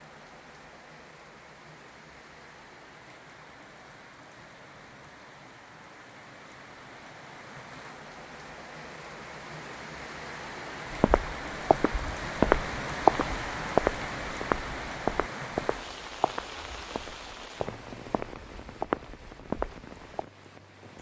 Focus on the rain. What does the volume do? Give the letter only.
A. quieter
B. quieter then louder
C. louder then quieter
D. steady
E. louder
C.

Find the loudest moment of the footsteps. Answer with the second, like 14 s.
13 s.